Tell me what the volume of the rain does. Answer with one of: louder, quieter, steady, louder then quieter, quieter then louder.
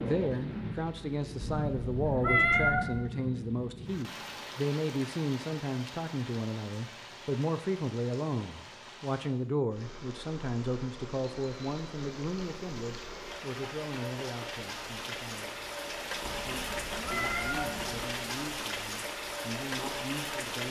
quieter then louder.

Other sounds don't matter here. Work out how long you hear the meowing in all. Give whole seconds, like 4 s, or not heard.
3 s.